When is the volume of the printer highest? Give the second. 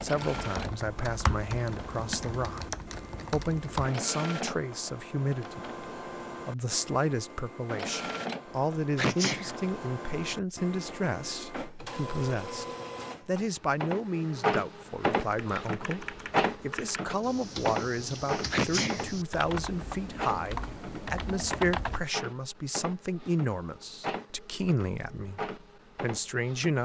15 s.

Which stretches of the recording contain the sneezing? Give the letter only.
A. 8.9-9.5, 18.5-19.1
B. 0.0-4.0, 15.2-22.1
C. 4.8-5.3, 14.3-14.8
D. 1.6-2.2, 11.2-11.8
A.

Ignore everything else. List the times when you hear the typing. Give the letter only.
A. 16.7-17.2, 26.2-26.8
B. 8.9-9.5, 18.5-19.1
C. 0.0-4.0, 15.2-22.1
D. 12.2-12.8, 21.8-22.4
C.